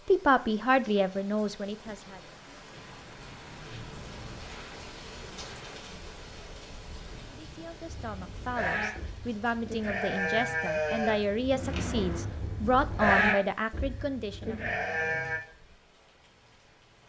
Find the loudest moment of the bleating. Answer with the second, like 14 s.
13 s.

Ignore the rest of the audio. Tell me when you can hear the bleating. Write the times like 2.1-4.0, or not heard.
7.8-15.4.